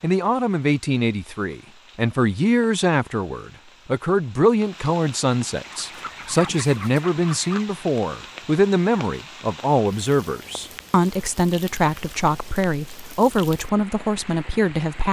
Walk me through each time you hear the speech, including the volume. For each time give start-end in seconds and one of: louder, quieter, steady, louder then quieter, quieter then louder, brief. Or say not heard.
0.0-15.0 steady.